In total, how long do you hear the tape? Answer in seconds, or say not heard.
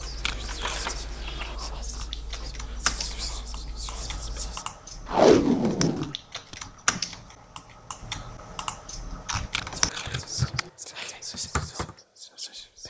4 s.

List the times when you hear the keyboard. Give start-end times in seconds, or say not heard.
0.1-11.9.